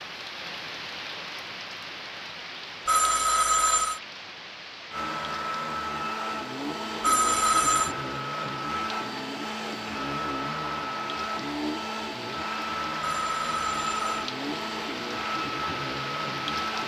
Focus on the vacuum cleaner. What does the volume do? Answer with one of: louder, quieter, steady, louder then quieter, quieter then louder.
steady.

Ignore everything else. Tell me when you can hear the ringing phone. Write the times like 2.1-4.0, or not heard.
2.9-4.0, 7.0-8.0, 13.0-14.2.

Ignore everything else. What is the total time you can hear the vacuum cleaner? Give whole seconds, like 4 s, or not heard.
12 s.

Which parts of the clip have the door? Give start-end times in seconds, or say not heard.
not heard.